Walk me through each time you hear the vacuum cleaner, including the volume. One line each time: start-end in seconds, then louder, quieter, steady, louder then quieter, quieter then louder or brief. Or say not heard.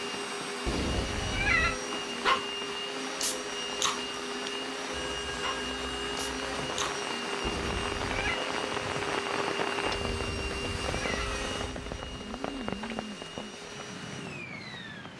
0.0-15.1 quieter.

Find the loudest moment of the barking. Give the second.
2 s.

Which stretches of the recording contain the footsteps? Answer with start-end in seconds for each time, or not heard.
not heard.